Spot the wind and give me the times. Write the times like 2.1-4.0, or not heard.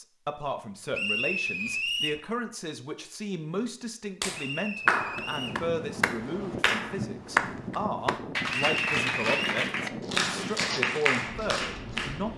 4.8-12.3.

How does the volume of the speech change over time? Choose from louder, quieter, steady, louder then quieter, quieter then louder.
steady.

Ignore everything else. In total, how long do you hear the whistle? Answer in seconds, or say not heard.
4 s.